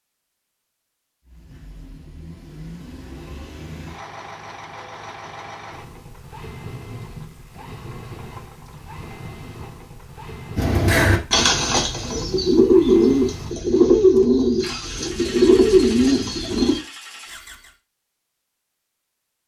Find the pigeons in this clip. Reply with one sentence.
The pigeons can be heard from 10.6 to 16.8 s.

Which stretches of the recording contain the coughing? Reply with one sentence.
The coughing can't be heard in this clip.